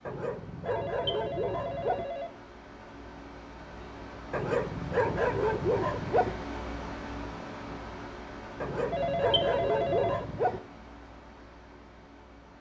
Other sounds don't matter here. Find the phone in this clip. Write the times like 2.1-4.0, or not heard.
0.7-2.4, 8.9-10.2.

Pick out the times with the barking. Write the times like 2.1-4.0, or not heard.
0.1-2.0, 4.3-6.3, 8.6-10.6.